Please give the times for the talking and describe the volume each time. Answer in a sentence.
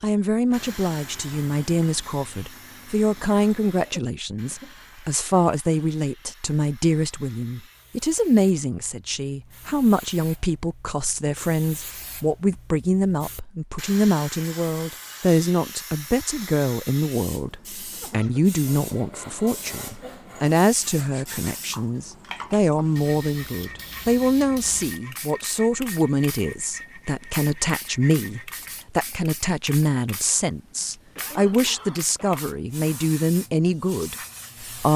The talking can be heard from 0.0 to 34.9 s, at a steady volume.